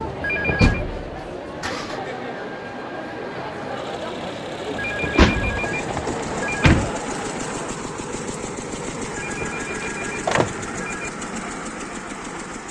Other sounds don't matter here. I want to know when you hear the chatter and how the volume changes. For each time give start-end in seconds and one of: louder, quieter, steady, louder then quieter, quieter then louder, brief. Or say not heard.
0.0-7.8 steady.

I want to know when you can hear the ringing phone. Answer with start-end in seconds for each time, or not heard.
0.2-0.8, 4.8-6.8, 9.2-11.2.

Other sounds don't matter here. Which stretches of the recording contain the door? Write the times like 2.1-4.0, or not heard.
0.6-1.0, 4.7-6.9, 9.8-10.7.